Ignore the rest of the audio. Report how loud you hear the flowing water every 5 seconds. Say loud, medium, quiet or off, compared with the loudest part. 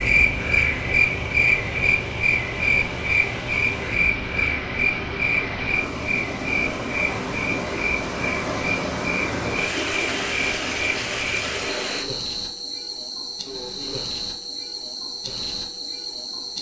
medium, loud, loud, off.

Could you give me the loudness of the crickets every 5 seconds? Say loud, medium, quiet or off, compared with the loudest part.
loud, medium, medium, medium.